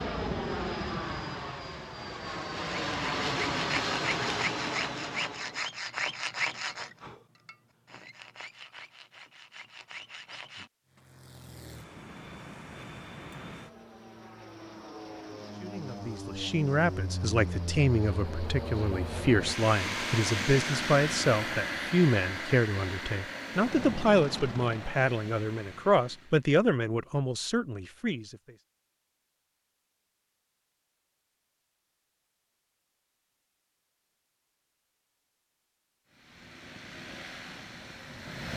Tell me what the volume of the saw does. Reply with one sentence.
The volume of the saw goes down.